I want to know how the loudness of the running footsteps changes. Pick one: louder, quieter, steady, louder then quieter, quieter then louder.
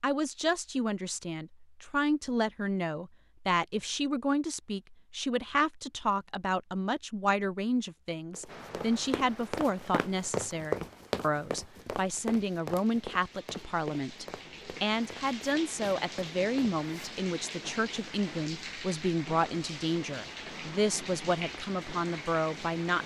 louder then quieter.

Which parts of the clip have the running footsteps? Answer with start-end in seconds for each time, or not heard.
8.3-17.1.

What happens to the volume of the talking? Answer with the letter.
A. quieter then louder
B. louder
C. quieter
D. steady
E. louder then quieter
D.